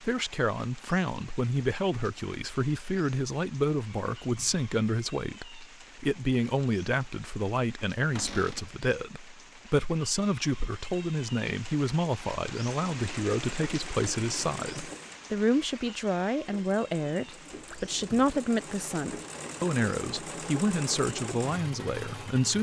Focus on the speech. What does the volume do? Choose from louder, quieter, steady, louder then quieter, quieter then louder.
steady.